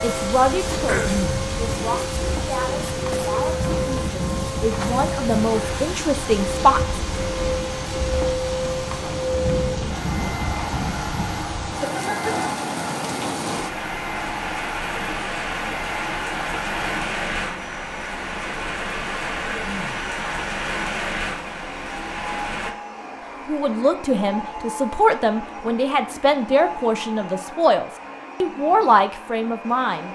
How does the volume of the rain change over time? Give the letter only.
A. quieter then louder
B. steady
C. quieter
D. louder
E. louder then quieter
B.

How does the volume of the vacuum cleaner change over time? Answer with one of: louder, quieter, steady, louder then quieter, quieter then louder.
quieter.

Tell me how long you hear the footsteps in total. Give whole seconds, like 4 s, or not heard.
not heard.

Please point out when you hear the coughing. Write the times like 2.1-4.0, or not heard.
0.8-1.4, 19.4-20.1.